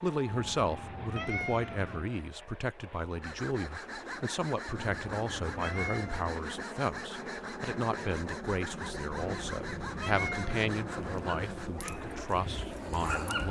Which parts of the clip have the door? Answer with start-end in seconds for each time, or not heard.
not heard.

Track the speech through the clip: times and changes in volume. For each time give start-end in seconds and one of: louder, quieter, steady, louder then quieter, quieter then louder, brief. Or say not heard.
0.0-13.4 steady.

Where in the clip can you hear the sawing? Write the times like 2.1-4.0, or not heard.
3.2-11.7.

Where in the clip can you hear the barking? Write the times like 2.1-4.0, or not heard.
10.9-13.4.